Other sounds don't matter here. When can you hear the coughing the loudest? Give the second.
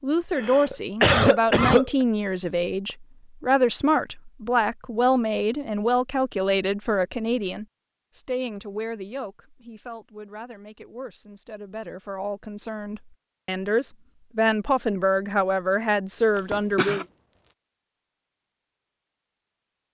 1 s.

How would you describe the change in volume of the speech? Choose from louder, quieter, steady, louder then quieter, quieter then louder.
quieter then louder.